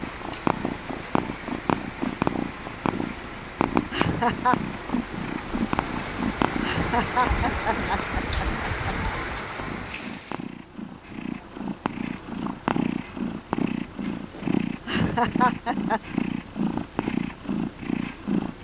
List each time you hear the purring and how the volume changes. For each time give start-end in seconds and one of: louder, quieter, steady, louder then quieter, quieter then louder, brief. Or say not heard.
0.0-18.5 quieter then louder.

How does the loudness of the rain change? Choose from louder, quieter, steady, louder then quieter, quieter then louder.
louder.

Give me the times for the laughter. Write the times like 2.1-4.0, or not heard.
3.9-4.6, 6.6-8.9, 14.8-16.0.